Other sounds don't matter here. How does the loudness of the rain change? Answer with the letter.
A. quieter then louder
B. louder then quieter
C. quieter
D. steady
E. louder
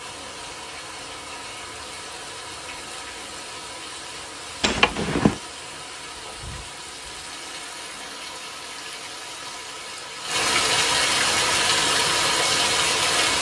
E.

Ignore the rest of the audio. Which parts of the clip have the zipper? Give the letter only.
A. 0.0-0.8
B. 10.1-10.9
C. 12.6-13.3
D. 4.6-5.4
D.